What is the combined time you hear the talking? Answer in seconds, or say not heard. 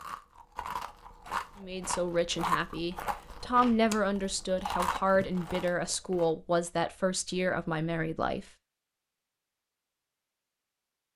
7 s.